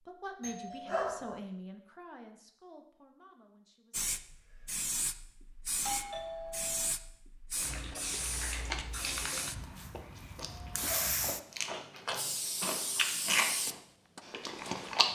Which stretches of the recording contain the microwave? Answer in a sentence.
The microwave can't be heard in this clip.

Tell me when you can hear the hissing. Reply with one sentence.
You can hear the hissing from 3.9 to 15.1 s.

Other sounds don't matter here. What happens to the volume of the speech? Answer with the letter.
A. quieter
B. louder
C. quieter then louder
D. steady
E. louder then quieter
A.